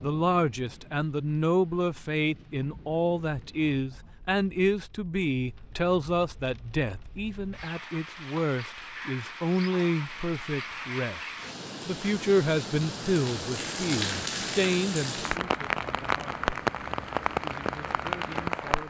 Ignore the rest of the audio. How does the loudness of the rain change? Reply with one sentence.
The loudness of the rain goes up.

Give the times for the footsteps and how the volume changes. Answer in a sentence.
The footsteps can't be heard in this clip.